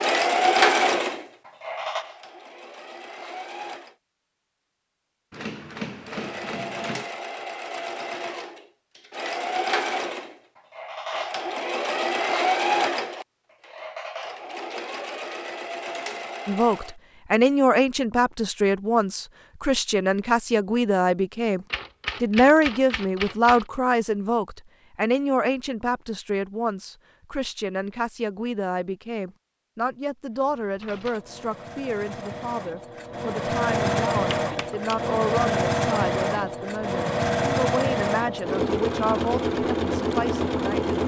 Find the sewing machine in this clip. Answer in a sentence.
You can hear the sewing machine from 0.0 to 4.0 s, from 6.0 to 16.9 s and from 30.4 to 41.0 s.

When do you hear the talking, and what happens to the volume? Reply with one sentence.
You can hear the talking from 16.4 to 40.9 s, getting quieter.